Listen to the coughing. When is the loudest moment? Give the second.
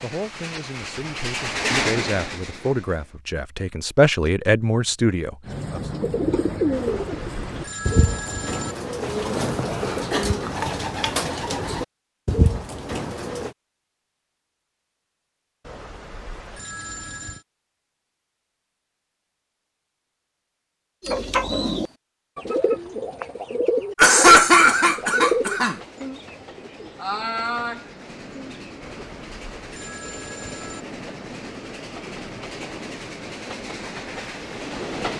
24 s.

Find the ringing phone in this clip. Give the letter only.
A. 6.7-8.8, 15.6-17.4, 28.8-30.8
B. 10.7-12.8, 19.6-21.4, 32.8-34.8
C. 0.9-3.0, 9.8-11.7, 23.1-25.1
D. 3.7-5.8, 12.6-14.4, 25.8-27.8
A.